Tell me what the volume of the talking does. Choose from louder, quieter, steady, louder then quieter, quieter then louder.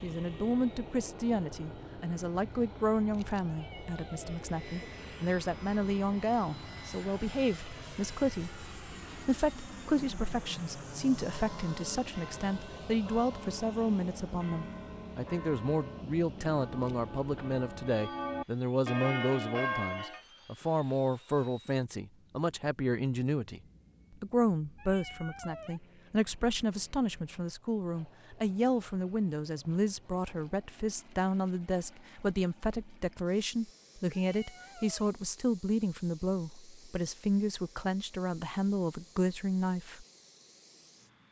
steady.